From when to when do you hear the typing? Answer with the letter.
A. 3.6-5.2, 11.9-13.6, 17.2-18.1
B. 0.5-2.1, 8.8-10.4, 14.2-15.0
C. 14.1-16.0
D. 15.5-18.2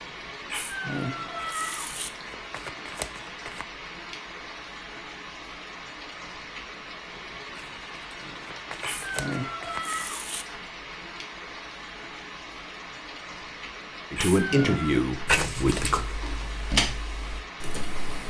D.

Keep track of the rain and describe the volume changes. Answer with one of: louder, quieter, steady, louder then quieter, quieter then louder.
steady.